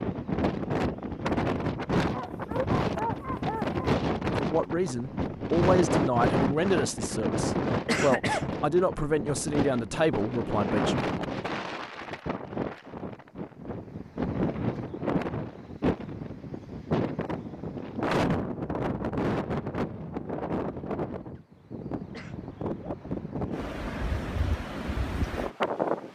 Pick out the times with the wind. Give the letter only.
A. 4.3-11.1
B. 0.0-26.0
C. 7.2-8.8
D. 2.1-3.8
B.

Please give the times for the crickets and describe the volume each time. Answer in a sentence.
You can't hear the crickets here.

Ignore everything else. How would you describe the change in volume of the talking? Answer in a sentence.
The volume of the talking stays about the same.